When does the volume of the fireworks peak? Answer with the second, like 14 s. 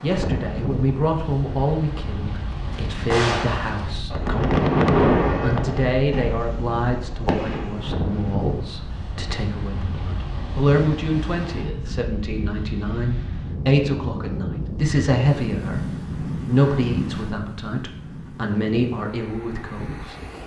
5 s.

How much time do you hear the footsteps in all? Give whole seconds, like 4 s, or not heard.
not heard.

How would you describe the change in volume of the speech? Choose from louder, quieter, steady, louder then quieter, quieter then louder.
steady.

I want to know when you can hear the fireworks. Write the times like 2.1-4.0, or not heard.
2.5-7.8.